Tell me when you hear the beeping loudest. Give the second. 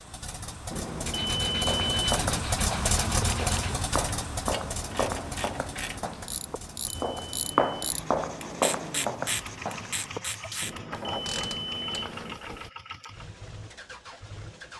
2 s.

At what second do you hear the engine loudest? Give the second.
3 s.